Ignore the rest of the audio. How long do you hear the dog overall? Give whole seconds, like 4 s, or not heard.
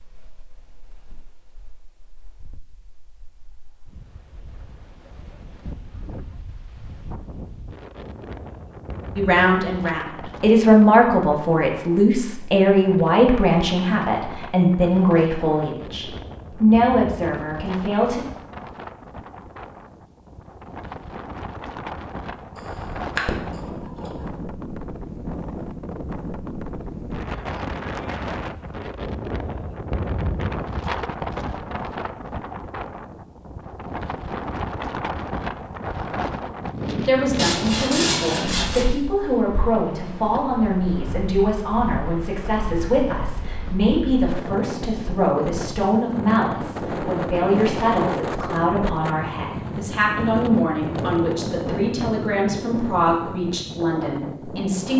not heard.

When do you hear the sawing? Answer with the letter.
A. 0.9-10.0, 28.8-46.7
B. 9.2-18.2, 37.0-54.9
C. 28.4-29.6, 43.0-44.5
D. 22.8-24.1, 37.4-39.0
D.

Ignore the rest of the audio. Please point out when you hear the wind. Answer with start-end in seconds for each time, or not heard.
0.0-54.9.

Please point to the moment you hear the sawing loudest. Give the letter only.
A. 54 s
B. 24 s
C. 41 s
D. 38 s
D.